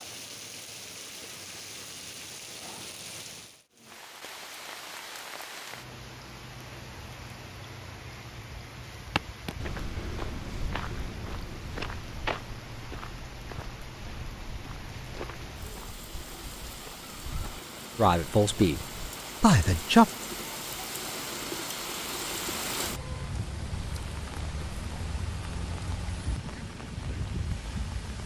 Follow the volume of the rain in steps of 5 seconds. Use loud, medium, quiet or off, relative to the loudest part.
medium, medium, medium, medium, loud, loud.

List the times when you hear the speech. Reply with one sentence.
You can hear the speech from 17.9 to 20.1 s.